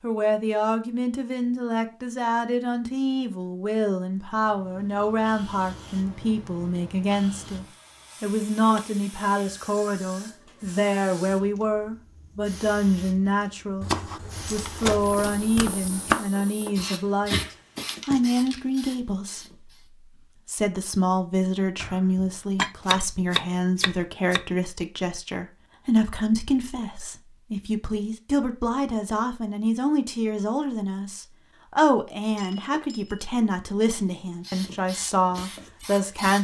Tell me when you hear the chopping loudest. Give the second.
16 s.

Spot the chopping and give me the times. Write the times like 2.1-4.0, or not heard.
13.8-16.3, 21.8-24.4.